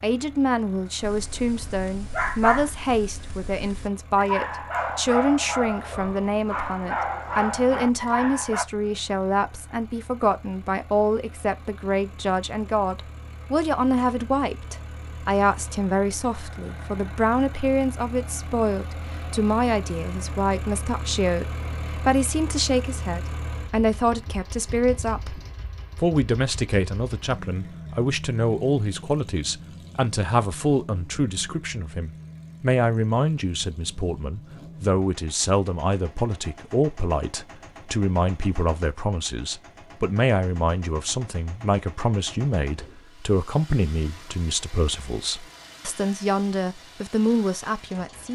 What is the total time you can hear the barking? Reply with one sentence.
The barking can be heard for 8 seconds in total.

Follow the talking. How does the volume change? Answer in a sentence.
The volume of the talking stays about the same.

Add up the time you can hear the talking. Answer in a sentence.
You can hear the talking for 48 seconds altogether.